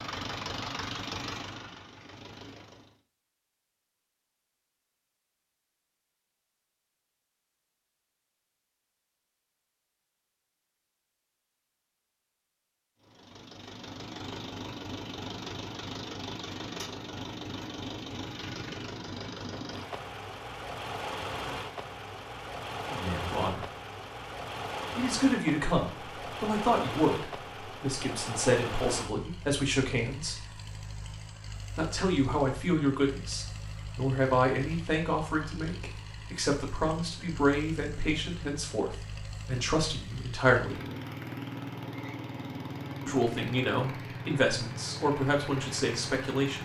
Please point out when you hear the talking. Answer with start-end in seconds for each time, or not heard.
22.9-23.6, 24.9-30.5, 31.8-40.8, 43.0-46.6.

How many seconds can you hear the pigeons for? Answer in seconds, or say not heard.
not heard.